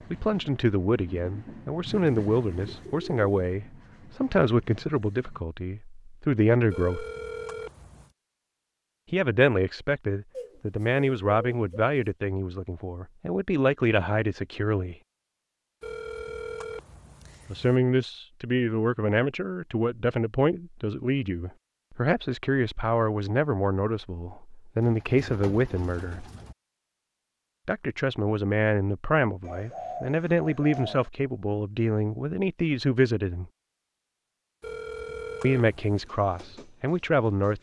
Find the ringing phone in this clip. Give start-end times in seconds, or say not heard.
6.7-8.1, 15.8-17.8, 34.6-36.1.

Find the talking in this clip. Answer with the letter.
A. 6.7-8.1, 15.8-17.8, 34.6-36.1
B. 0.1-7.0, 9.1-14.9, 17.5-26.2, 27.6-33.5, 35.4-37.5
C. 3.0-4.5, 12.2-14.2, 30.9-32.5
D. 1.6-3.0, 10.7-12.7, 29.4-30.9
B.